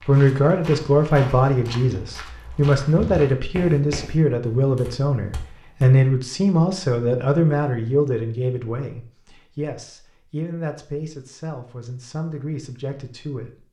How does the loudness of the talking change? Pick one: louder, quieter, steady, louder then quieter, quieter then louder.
quieter.